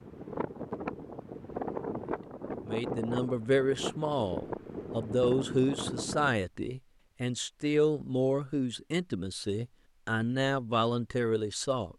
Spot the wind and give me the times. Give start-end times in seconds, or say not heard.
0.0-6.4.